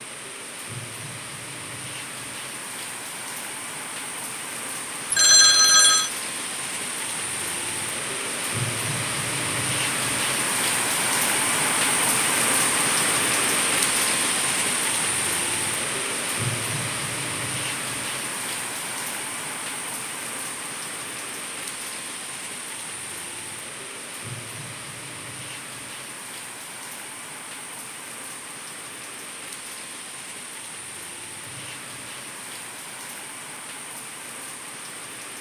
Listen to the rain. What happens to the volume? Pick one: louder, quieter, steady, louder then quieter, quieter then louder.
louder then quieter.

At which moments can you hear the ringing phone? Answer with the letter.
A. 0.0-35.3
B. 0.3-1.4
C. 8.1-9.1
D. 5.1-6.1
D.